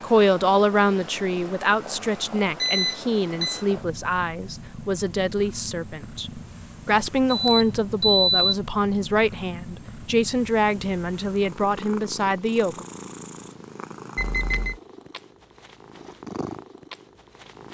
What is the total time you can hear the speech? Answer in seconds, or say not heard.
13 s.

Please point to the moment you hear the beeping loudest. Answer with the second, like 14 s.
8 s.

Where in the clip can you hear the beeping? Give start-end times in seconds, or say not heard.
2.6-3.6, 7.3-8.4, 14.2-14.8.